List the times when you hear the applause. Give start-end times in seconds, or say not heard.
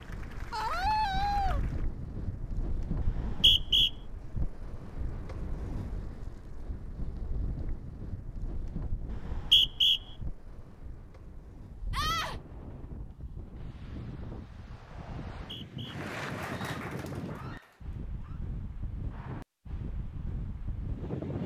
0.0-1.9, 15.8-18.0.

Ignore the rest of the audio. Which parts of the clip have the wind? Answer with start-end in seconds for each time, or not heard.
0.0-21.4.